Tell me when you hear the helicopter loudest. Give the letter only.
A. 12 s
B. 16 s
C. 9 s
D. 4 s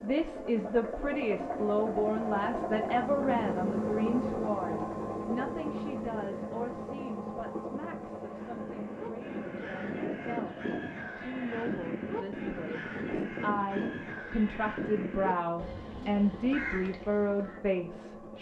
D.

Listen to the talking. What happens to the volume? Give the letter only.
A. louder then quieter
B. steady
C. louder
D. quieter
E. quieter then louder
E.